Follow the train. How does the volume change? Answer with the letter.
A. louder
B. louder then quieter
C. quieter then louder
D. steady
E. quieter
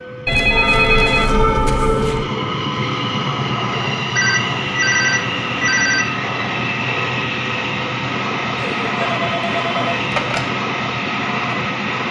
D.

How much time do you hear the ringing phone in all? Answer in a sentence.
The ringing phone can be heard for 6 seconds in total.